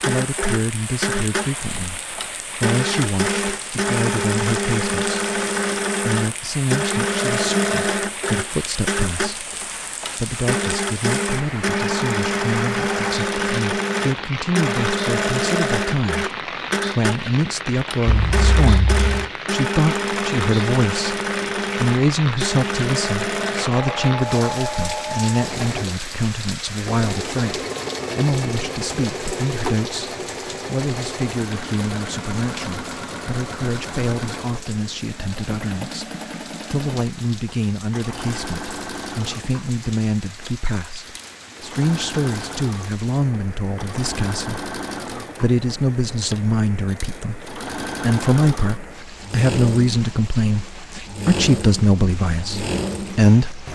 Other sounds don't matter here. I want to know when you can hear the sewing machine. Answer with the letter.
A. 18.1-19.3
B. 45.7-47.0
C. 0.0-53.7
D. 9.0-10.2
C.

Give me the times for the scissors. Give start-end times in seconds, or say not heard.
18.1-19.3.